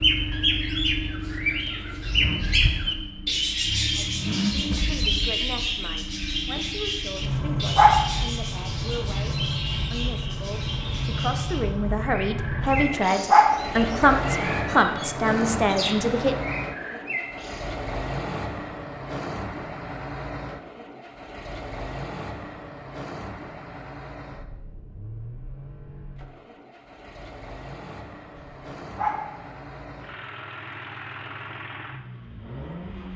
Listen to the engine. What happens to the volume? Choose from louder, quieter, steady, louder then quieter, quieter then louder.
quieter.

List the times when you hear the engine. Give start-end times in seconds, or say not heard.
0.0-33.1.